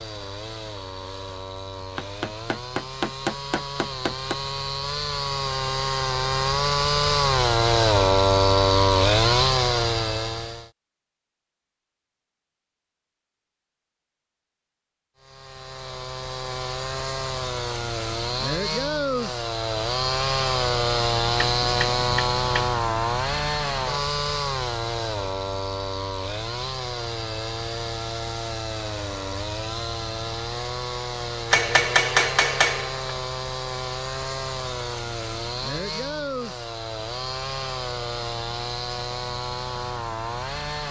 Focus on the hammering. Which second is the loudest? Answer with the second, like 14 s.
32 s.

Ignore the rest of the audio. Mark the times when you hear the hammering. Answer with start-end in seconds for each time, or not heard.
1.9-4.3, 21.4-22.8, 31.5-33.1.